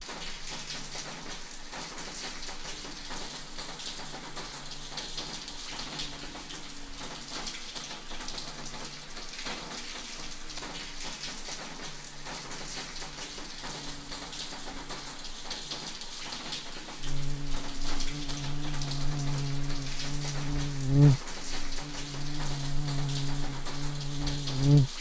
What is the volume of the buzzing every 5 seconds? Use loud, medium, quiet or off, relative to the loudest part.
quiet, quiet, quiet, medium, loud.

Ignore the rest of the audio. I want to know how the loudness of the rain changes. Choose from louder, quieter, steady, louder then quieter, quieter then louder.
steady.